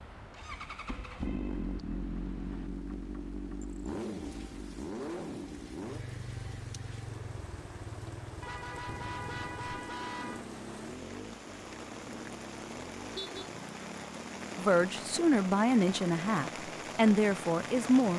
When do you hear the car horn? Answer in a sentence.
You can hear the car horn from 0.8 to 2.7 s, from 8.4 to 10.4 s and from 13.2 to 13.6 s.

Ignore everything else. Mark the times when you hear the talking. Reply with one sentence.
You can hear the talking from 14.6 to 18.1 s.